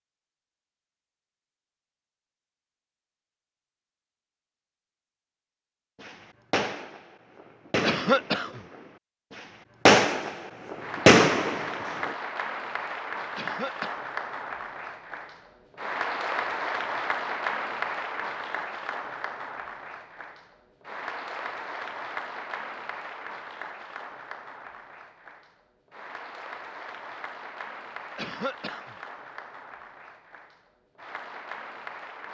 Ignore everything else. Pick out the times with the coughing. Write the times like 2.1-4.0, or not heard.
7.8-8.6, 13.3-14.0, 28.1-28.9.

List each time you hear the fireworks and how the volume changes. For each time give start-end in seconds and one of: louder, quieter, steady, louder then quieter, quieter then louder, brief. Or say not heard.
6.0-12.2 quieter then louder.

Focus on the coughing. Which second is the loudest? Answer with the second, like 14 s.
8 s.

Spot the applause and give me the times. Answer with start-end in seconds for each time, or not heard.
10.8-32.2.